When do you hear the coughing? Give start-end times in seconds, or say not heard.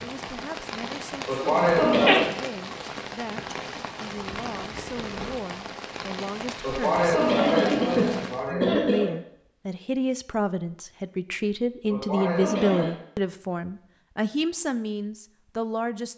1.2-2.3, 6.6-9.2, 11.9-12.9.